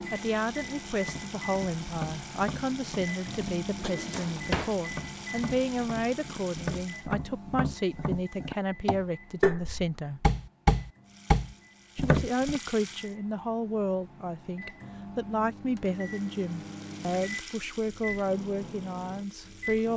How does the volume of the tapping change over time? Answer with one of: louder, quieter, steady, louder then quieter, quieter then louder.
louder.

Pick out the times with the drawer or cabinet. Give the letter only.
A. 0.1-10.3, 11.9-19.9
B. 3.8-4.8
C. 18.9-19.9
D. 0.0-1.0
B.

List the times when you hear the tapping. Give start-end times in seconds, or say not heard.
1.0-12.6.